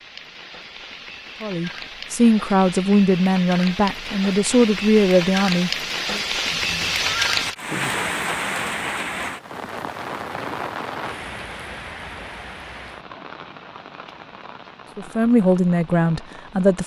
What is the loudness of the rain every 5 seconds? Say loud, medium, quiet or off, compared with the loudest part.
medium, loud, medium, quiet.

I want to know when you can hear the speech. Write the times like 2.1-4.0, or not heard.
1.4-6.2, 14.9-16.8.